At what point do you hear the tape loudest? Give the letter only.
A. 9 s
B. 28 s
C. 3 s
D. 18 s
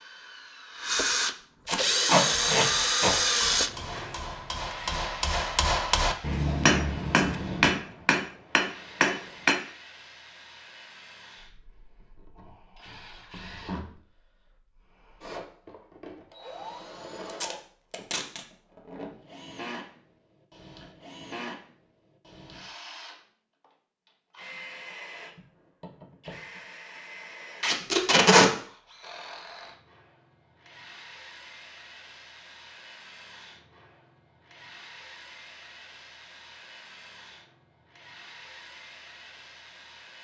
B.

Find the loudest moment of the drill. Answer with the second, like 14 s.
3 s.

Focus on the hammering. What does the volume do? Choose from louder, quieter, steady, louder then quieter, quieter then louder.
louder.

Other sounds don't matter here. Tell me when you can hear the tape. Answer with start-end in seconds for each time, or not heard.
1.6-3.1, 17.2-18.4, 27.6-28.5.